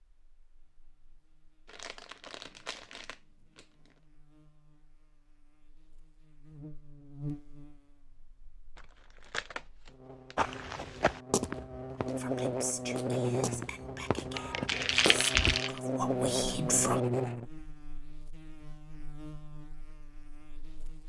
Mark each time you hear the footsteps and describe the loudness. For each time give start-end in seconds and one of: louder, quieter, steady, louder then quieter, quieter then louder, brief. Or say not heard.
10.3-15.6 quieter then louder.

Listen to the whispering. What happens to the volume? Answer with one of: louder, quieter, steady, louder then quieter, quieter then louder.
quieter then louder.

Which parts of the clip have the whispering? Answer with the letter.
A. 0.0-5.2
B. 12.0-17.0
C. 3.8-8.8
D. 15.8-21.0
B.